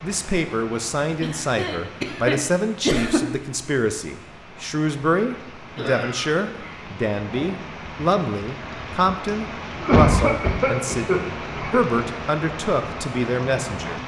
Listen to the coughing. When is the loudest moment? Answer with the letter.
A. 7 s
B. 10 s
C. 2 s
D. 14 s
B.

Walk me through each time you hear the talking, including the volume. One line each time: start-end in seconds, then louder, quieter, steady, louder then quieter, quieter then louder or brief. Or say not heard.
0.0-14.0 steady.